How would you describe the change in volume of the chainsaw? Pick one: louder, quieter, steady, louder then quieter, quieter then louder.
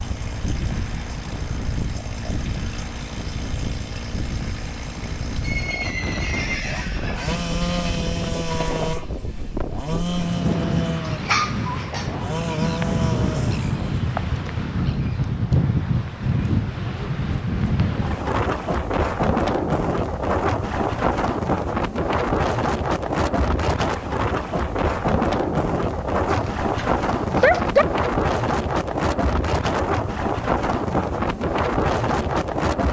louder.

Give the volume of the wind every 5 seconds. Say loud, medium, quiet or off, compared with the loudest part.
medium, medium, loud, loud, loud, loud, loud.